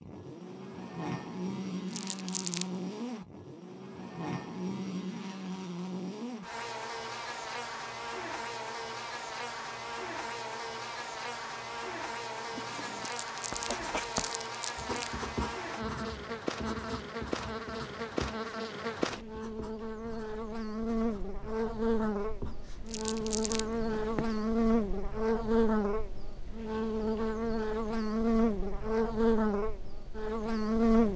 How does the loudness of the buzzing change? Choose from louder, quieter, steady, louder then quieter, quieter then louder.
louder.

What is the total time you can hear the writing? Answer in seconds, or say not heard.
12 s.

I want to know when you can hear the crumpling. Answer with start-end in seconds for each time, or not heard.
1.9-2.6, 13.0-15.2, 22.9-23.6.